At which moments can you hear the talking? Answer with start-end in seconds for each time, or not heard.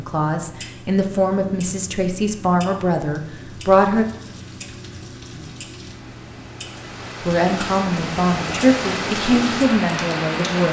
0.0-4.0, 7.2-10.6.